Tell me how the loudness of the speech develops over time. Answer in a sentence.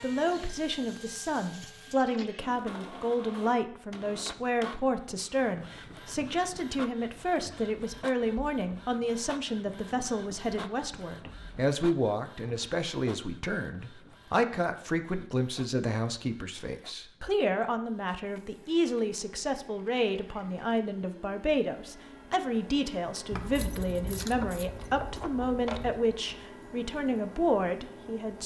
The loudness of the speech stays about the same.